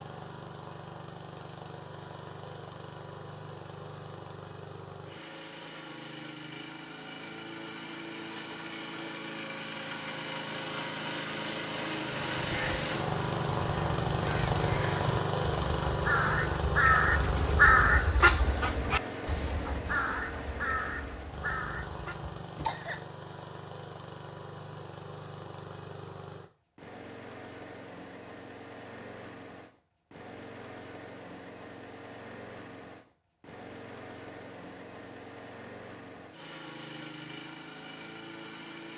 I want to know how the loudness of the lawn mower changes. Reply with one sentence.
The volume of the lawn mower goes up, then down.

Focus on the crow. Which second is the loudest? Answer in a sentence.
The volume of the crow peaks at 18 seconds.